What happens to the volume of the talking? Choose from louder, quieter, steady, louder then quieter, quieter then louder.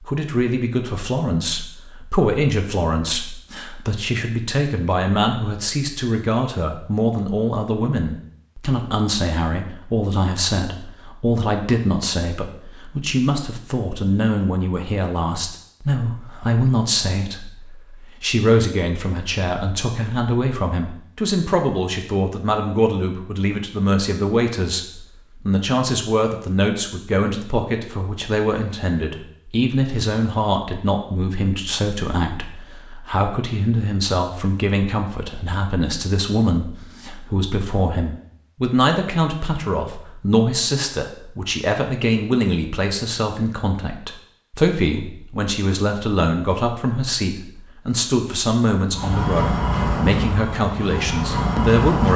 steady.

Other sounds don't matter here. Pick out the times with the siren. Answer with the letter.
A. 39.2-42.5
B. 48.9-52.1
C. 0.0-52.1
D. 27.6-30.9
B.